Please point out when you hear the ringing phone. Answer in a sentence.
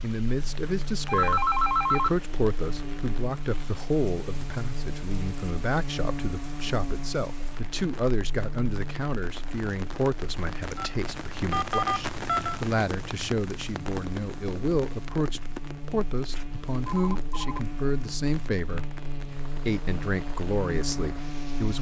The ringing phone can be heard from 1.1 to 2.2 s, from 10.8 to 12.6 s and from 16.9 to 17.6 s.